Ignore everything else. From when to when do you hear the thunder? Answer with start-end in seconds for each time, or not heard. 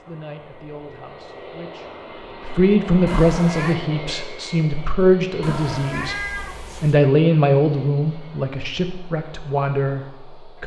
not heard.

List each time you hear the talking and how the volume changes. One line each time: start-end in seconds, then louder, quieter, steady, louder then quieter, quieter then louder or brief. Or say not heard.
0.0-10.6 louder then quieter.